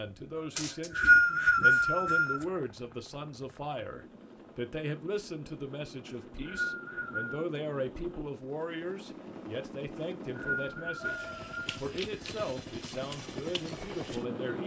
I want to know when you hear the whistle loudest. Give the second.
1 s.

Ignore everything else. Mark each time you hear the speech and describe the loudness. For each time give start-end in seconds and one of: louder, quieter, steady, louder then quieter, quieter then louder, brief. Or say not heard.
0.0-14.6 steady.